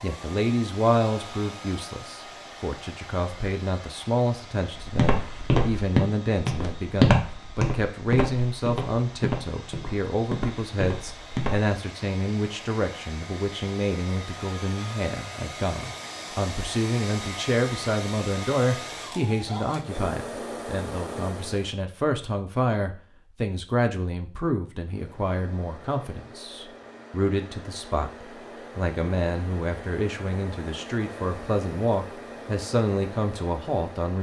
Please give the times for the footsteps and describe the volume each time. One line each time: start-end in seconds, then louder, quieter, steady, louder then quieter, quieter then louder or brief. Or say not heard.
4.8-11.7 quieter.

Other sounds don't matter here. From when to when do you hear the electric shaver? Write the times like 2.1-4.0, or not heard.
not heard.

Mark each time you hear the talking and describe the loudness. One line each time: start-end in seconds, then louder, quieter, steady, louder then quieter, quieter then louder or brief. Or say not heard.
0.0-34.1 steady.